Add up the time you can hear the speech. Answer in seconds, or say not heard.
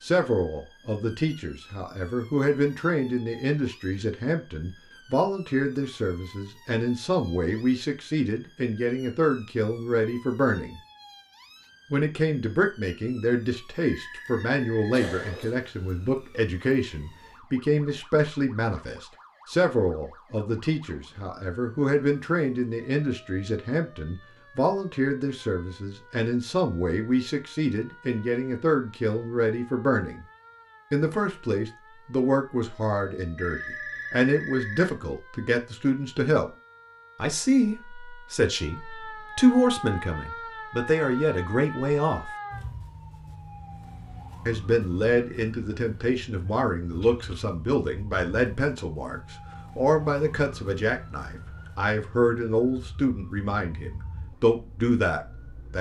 51 s.